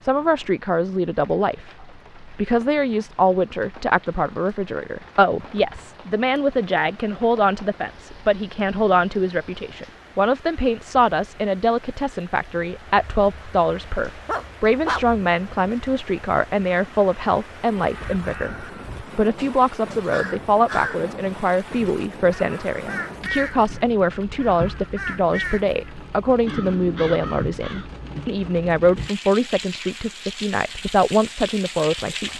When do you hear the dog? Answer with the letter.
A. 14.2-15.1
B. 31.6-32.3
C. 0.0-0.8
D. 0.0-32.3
A.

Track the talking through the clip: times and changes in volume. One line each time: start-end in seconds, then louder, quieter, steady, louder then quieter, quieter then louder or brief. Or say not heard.
0.0-32.3 steady.